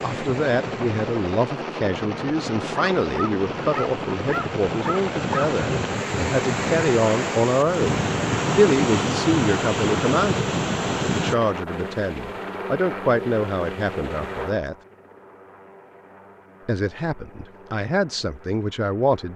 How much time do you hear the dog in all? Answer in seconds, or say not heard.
3 s.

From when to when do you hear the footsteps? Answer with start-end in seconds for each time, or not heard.
not heard.